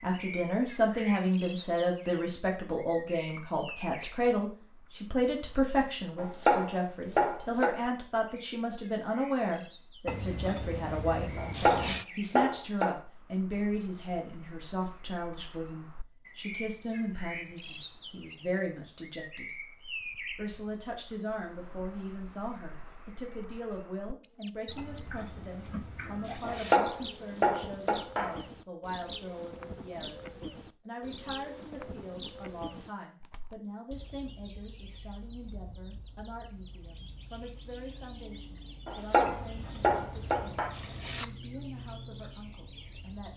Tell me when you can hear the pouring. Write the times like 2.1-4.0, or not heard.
10.1-12.1, 24.8-26.8, 39.2-41.2.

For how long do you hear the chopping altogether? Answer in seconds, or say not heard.
7 s.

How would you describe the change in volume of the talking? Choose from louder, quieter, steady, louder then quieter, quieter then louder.
quieter.